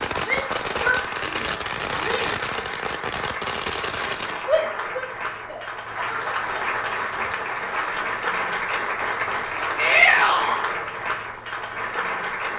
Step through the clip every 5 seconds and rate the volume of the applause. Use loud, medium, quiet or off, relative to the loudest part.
medium, loud, loud.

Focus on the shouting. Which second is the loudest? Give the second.
10 s.